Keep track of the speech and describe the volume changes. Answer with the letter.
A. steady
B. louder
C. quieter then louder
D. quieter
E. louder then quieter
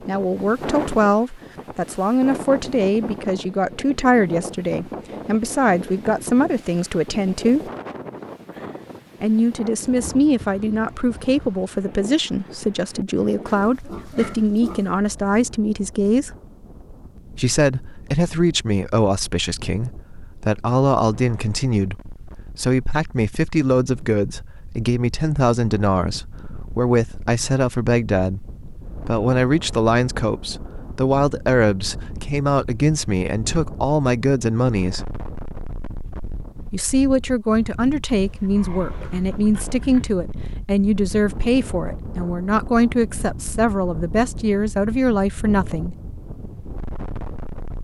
A.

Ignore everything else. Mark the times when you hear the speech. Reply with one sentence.
The speech can be heard from 0.1 to 7.7 s, from 9.2 to 16.3 s, from 17.4 to 35.1 s and from 36.7 to 46.0 s.